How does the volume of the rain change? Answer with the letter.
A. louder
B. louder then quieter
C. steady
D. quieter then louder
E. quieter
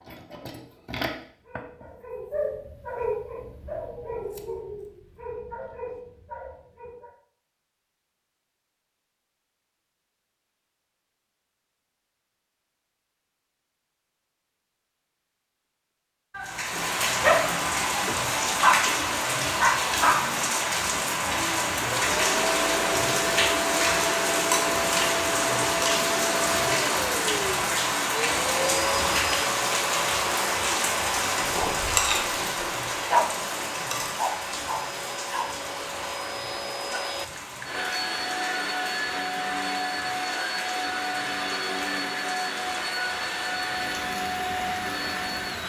E.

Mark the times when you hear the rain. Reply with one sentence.
The rain can be heard from 16.4 to 45.6 s.